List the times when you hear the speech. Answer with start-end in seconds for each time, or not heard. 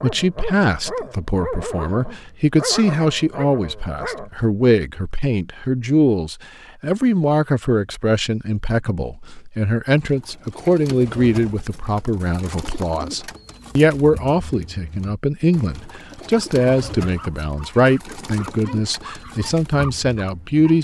0.0-20.7.